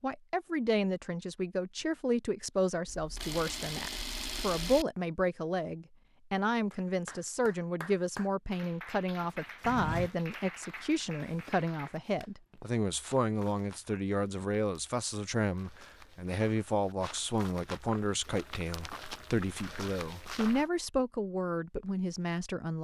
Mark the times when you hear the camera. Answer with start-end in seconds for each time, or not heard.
2.9-4.8.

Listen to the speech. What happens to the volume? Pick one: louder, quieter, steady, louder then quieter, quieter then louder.
steady.